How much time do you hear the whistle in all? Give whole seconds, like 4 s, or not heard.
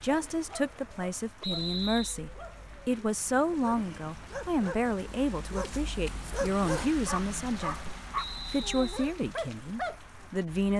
2 s.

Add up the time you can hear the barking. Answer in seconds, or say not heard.
10 s.